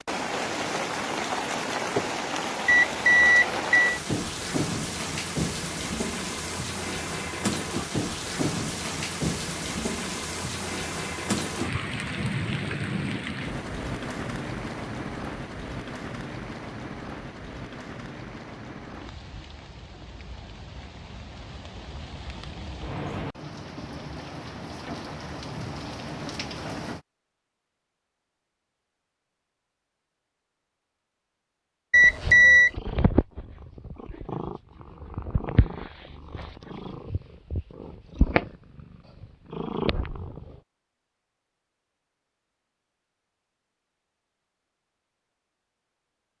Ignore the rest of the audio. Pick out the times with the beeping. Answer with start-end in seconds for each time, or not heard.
2.6-4.0, 31.9-32.7.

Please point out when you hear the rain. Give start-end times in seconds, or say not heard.
0.0-27.0.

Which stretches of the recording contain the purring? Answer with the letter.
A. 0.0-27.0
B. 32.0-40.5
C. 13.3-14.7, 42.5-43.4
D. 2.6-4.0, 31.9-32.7
B.